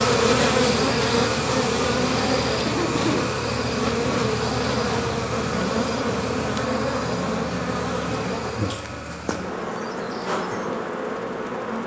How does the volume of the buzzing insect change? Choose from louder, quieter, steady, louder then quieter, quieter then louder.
quieter.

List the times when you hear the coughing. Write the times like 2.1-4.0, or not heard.
2.6-3.3.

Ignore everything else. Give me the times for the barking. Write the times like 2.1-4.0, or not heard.
not heard.